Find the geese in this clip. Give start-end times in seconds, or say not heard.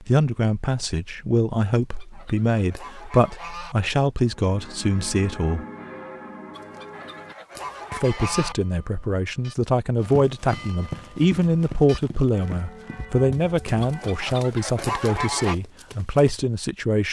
1.8-3.8, 6.5-8.6, 13.8-15.6.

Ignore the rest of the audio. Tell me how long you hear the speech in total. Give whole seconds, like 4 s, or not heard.
15 s.